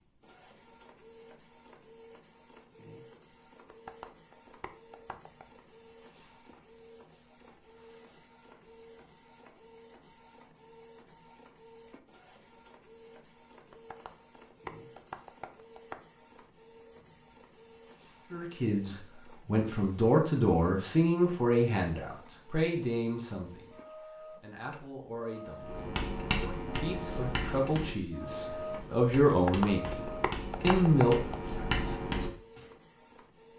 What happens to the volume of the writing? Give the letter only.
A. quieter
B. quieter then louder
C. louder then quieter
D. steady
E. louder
B.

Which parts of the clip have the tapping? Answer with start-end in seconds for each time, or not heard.
3.6-5.5, 13.7-16.0, 29.3-31.4.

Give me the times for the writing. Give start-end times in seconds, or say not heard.
25.6-32.7.